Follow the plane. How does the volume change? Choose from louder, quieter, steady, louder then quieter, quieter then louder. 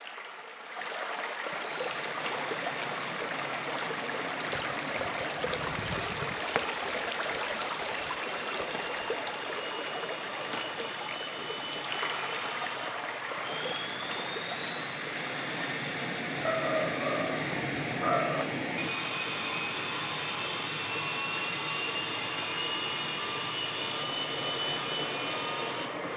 louder.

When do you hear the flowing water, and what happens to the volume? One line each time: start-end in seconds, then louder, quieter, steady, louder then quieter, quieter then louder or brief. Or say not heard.
0.0-26.1 quieter.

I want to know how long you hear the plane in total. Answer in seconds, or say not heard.
25 s.